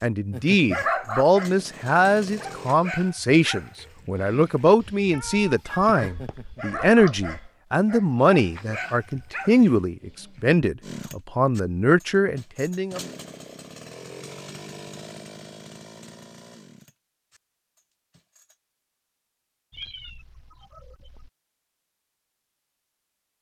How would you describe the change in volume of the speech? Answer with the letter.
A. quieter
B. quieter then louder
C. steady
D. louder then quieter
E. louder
C.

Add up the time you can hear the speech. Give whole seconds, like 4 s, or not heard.
13 s.